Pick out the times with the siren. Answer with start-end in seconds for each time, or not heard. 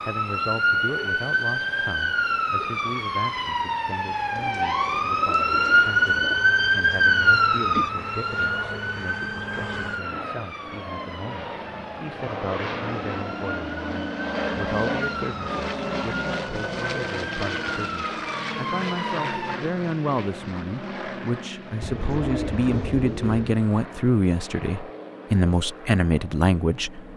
0.0-19.6.